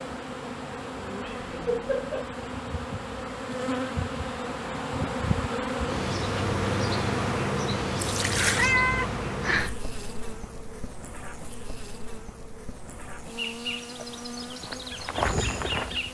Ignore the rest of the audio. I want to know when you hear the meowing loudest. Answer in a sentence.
The loudest moment of the meowing is at 9 seconds.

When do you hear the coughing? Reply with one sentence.
You can't hear the coughing here.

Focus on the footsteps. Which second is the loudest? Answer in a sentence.
The loudest moment of the footsteps is at 15 seconds.